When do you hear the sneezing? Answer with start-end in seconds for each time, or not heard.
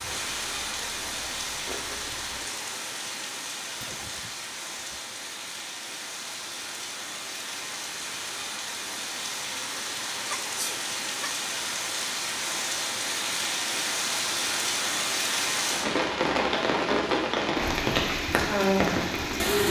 3.8-5.0, 10.2-11.3.